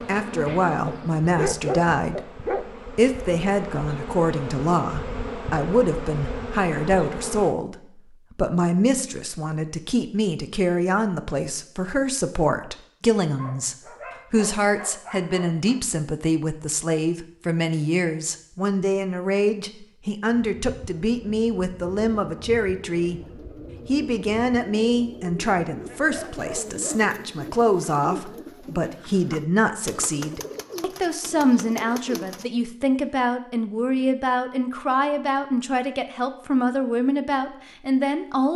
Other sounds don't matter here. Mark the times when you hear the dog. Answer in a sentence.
You can hear the dog from 0.8 to 2.7 s, from 13.3 to 15.8 s and from 25.9 to 27.1 s.